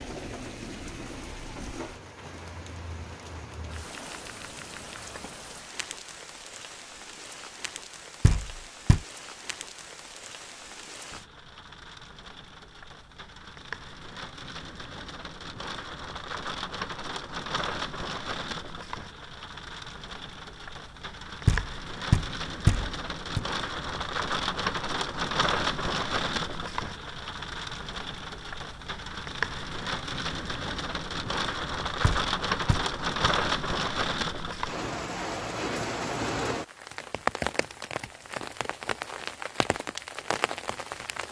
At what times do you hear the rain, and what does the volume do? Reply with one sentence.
You can hear the rain from 0.0 to 41.2 s, getting louder.